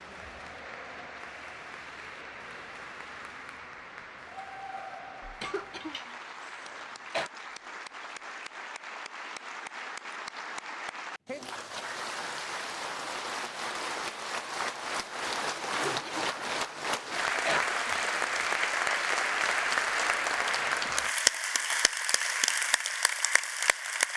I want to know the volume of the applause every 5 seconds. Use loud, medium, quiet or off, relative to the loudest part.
quiet, quiet, medium, loud, loud.